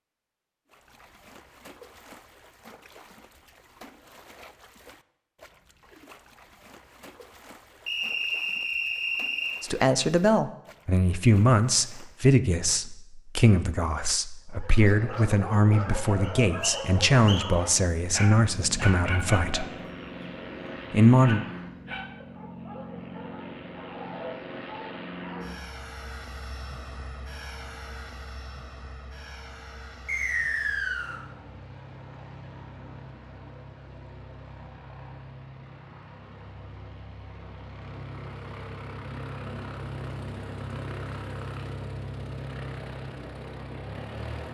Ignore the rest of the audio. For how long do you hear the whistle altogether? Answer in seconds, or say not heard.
4 s.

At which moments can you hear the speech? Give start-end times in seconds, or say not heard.
9.6-19.6, 20.9-21.4.